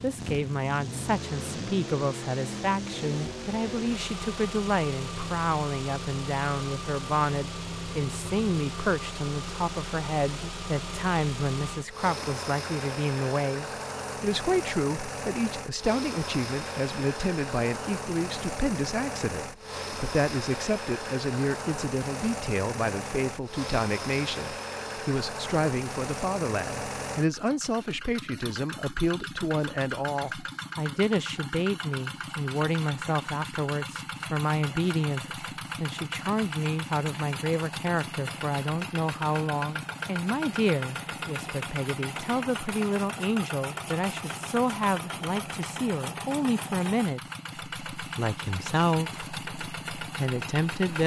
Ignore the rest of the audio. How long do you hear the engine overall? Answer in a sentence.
You can hear the engine for 51 seconds altogether.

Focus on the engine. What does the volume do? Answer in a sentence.
The volume of the engine stays about the same.